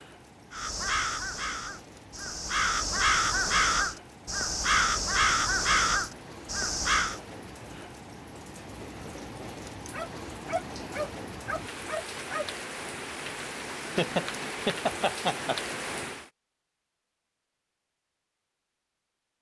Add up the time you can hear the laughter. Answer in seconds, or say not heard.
2 s.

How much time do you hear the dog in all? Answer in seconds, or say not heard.
3 s.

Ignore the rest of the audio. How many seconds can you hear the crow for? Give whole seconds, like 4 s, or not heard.
7 s.